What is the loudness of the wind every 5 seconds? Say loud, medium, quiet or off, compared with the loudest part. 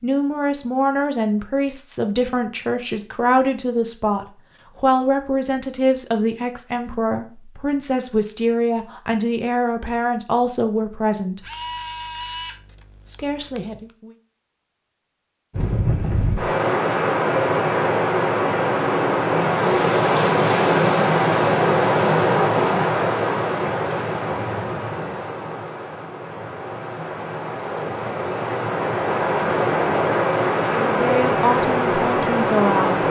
off, off, off, loud, loud, medium, loud.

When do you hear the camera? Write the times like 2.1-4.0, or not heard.
11.4-13.8.